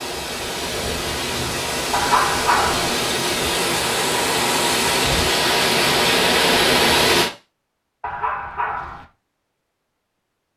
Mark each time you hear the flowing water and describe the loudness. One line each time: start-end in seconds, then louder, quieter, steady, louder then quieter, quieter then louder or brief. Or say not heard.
0.0-7.3 louder.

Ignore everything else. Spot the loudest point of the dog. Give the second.
2 s.